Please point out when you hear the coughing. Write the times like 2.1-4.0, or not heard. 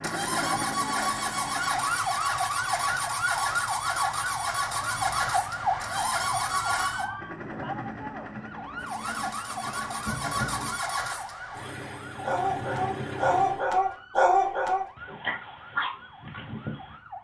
not heard.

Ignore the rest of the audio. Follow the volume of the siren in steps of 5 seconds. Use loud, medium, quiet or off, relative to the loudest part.
loud, loud, medium, quiet.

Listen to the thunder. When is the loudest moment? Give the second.
10 s.